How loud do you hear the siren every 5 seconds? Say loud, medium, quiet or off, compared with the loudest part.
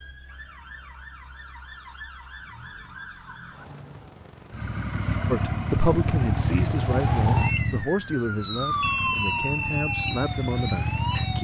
quiet, loud, loud.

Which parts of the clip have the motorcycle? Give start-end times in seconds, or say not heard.
4.5-11.4.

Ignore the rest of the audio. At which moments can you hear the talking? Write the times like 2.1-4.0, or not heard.
5.3-11.4.